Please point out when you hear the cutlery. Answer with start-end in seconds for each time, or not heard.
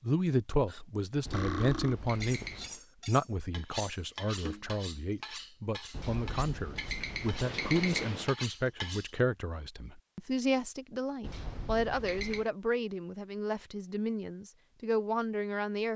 0.7-9.2.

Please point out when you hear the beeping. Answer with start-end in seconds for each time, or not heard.
1.2-2.8, 5.9-8.3, 11.2-12.5.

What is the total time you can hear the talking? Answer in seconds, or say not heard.
16 s.